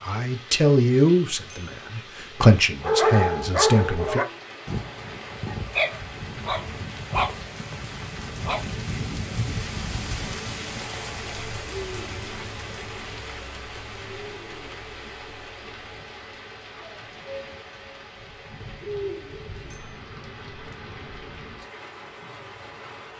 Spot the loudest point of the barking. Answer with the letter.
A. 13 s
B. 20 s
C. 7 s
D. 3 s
D.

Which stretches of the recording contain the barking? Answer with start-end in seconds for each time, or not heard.
2.8-8.6.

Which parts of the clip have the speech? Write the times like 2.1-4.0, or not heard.
0.0-4.2.